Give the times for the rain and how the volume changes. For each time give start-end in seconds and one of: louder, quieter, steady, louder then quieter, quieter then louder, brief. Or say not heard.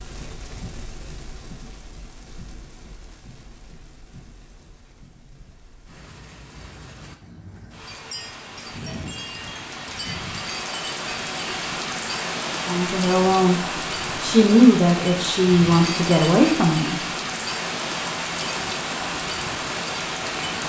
0.0-20.6 louder.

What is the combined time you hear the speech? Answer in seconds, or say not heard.
4 s.